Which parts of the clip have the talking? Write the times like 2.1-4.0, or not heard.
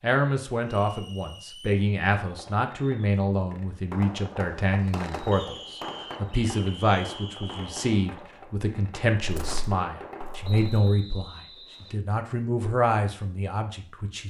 0.0-14.2.